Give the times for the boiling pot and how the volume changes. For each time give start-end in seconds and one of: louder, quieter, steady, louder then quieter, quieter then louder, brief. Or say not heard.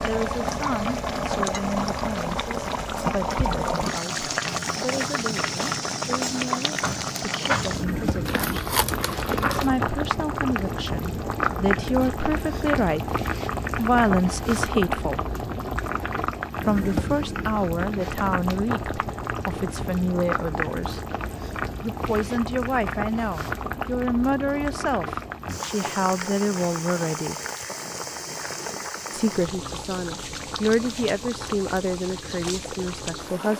0.0-33.5 quieter.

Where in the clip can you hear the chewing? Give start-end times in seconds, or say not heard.
8.2-9.7.